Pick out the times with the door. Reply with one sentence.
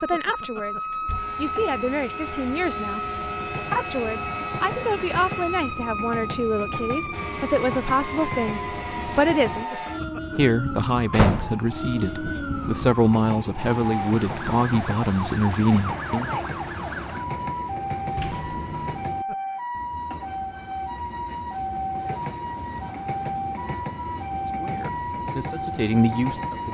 You can hear the door from 0.9 to 1.4 s, from 11.1 to 11.6 s and from 18.1 to 19.1 s.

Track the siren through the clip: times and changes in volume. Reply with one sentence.
You can hear the siren from 0.0 to 26.6 s, at a steady volume.